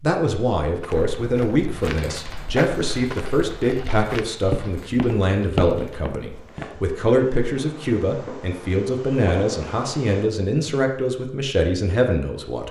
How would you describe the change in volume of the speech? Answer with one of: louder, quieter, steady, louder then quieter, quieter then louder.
steady.